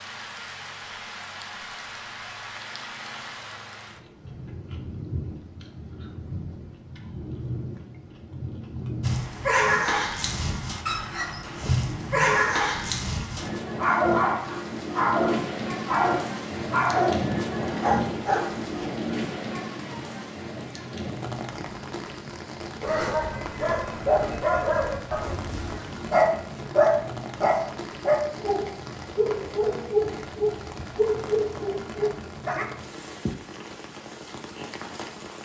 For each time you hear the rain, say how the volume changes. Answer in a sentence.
The rain can be heard from 0.0 to 35.4 s, getting louder then quieter.